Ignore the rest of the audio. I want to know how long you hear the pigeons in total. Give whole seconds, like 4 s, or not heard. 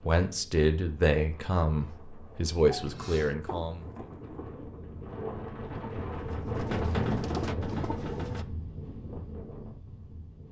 6 s.